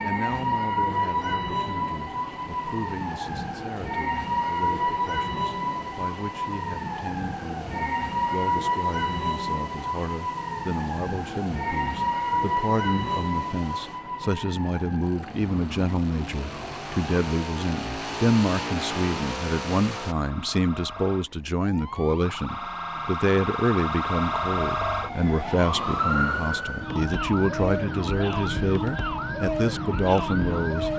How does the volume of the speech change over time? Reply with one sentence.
The loudness of the speech goes up.